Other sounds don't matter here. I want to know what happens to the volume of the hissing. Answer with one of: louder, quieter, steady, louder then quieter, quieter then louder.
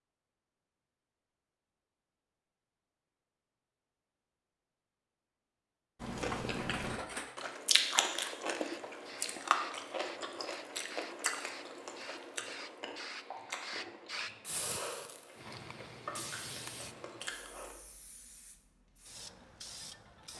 louder then quieter.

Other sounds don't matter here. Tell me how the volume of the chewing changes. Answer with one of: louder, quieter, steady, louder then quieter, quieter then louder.
quieter.